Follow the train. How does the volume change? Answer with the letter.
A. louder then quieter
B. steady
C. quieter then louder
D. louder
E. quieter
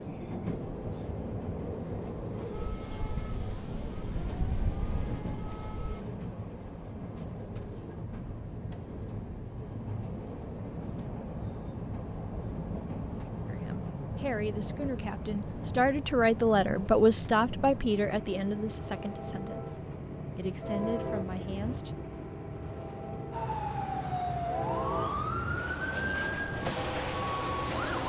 B.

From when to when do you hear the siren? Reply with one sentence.
The siren can be heard from 2.5 to 6.0 s and from 23.3 to 28.0 s.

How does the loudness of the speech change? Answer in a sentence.
The volume of the speech goes up, then down.